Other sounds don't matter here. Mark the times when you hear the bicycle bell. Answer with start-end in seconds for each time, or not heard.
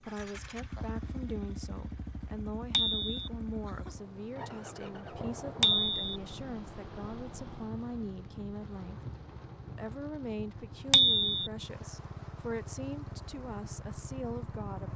2.7-3.3, 5.6-6.2, 10.9-11.4.